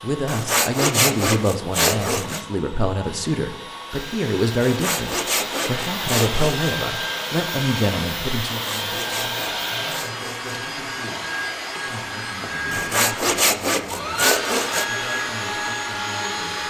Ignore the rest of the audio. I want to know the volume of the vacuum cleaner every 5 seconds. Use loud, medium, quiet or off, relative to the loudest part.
medium, loud, loud, loud.